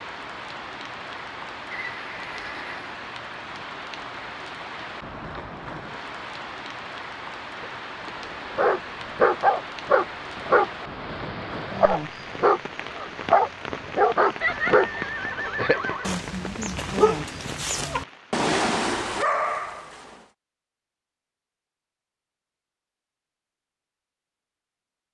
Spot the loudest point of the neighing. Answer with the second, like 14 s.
15 s.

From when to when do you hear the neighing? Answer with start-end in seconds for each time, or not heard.
1.7-3.0, 14.4-16.1.